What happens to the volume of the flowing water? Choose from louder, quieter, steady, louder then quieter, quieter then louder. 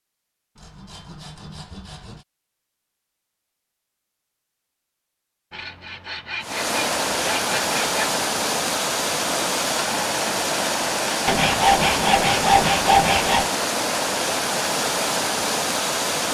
steady.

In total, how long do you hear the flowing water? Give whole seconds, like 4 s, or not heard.
10 s.